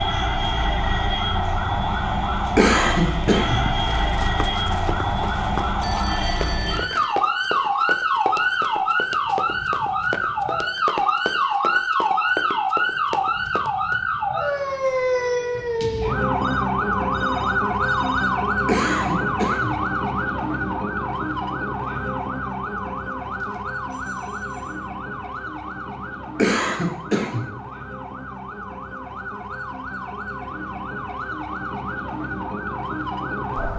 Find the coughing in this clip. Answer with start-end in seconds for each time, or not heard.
2.5-3.6, 18.6-19.8, 26.4-27.4.